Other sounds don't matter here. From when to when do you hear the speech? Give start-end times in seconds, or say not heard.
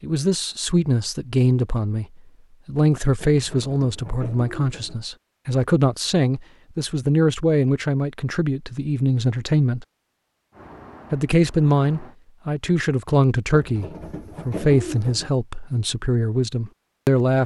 0.0-9.8, 11.1-17.4.